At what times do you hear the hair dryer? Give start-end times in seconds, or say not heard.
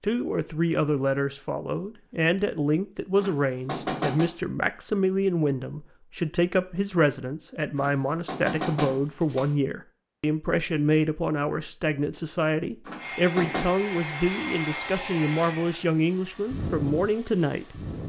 12.9-18.0.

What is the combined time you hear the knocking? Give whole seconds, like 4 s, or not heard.
4 s.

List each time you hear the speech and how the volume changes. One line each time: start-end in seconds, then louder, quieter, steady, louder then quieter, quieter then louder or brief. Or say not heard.
0.0-17.8 steady.